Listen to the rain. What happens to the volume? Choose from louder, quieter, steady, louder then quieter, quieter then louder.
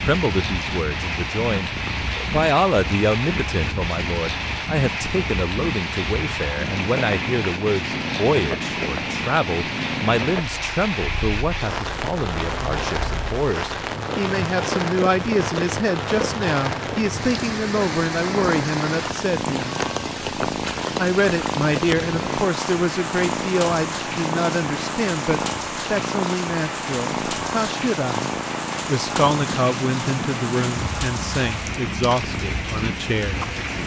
steady.